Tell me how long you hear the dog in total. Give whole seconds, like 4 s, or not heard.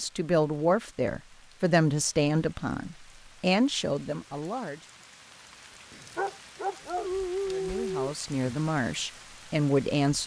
2 s.